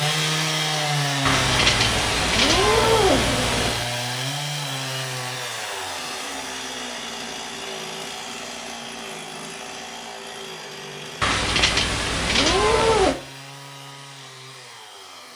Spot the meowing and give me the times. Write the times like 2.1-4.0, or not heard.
1.2-3.9, 11.2-13.2.